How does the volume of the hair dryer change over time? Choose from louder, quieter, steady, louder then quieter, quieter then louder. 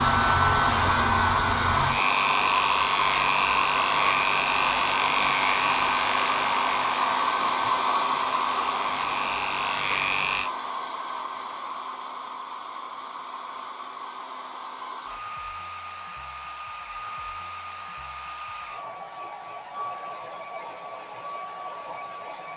quieter.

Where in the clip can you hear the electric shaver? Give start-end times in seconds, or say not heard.
0.0-10.5.